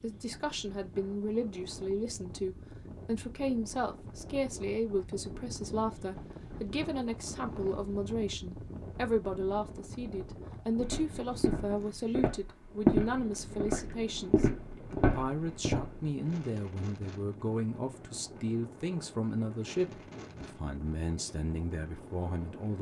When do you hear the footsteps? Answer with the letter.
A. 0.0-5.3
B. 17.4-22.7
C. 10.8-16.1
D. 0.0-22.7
C.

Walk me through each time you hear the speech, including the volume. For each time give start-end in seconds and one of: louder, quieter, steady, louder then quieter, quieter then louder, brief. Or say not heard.
0.0-22.7 steady.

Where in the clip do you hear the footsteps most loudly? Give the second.
13 s.